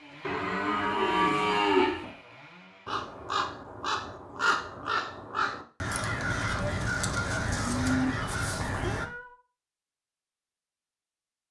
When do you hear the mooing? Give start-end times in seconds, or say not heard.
0.2-2.0, 6.2-8.2.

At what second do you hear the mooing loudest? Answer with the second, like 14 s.
2 s.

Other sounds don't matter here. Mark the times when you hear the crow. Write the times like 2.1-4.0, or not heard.
2.9-9.1.